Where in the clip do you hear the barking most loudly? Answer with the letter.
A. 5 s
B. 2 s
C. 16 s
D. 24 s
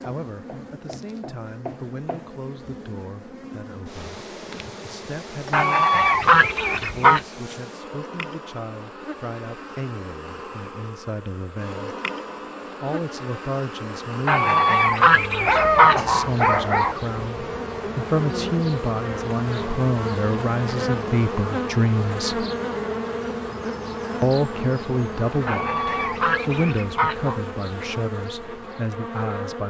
C.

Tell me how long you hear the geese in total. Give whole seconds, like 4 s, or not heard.
6 s.